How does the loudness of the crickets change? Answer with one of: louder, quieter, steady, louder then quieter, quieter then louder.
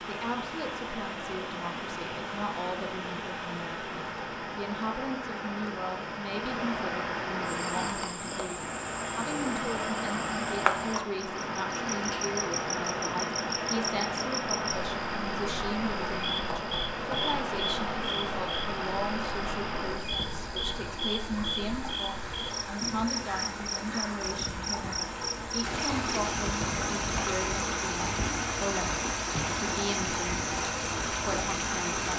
steady.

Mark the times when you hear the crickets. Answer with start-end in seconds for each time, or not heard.
7.5-32.1.